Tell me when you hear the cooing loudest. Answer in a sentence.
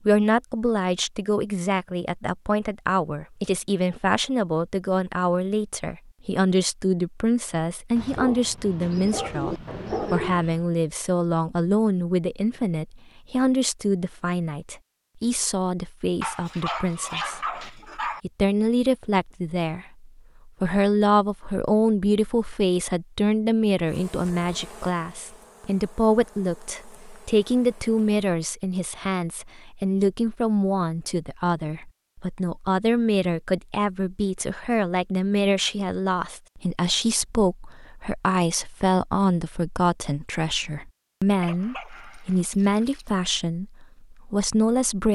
The loudest moment of the cooing is at 10 seconds.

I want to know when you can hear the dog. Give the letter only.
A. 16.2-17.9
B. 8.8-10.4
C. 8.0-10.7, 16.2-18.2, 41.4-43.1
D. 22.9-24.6
C.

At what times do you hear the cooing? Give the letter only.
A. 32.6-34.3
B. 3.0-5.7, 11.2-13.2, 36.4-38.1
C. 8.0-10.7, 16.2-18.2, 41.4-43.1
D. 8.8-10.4
D.